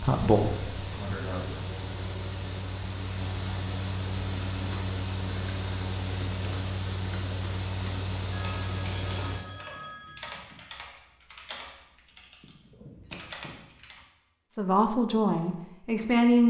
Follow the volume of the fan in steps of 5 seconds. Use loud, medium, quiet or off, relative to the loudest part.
loud, loud, off, off.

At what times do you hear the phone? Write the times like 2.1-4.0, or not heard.
8.3-10.3.